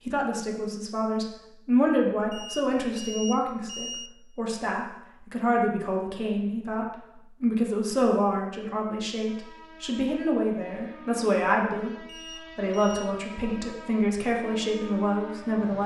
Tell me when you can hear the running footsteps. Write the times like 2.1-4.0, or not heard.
not heard.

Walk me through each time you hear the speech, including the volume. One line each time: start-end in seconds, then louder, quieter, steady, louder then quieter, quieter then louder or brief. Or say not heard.
0.0-15.8 steady.